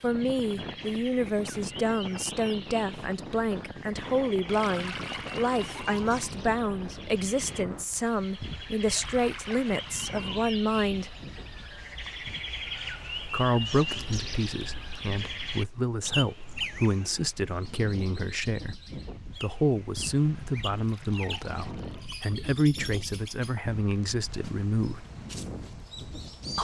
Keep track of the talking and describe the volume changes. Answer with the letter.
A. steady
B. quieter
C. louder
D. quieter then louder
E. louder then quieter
A.